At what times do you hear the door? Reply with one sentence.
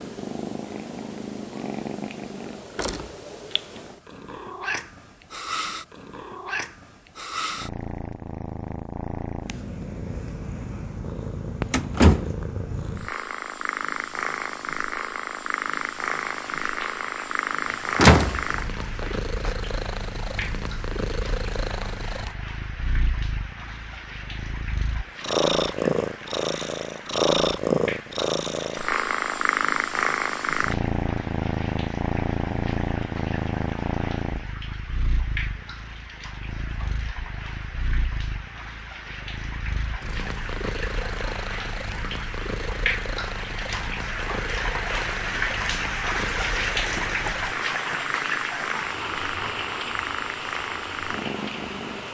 You can hear the door from 11.7 to 12.3 s, from 17.9 to 19.5 s and from 46.9 to 48.0 s.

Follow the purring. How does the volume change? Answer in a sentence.
The loudness of the purring goes up, then down.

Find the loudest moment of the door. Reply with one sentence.
The loudest moment of the door is at 18 seconds.